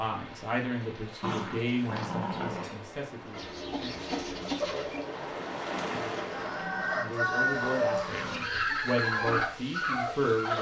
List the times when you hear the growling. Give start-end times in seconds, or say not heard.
1.2-2.9, 5.7-8.4.